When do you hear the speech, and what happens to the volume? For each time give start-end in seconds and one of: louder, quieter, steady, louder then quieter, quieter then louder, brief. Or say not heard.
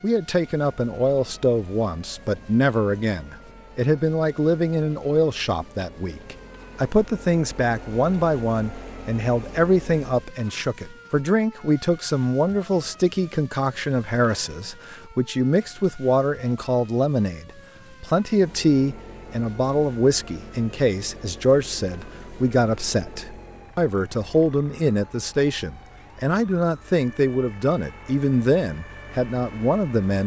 0.0-30.2 steady.